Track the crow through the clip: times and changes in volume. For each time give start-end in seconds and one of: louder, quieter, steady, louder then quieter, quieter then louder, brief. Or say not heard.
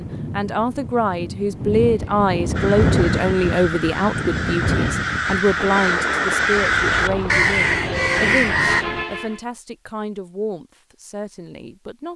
2.5-8.8 louder.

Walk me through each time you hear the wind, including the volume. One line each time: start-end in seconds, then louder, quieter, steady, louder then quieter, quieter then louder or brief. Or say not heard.
0.0-9.1 louder then quieter.